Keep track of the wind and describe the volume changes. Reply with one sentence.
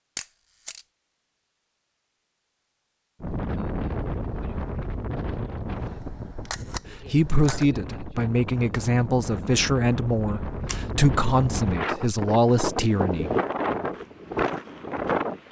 The loudness of the wind goes down, then up.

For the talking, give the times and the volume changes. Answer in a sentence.
You can hear the talking from 7.1 to 13.3 s, at a steady volume.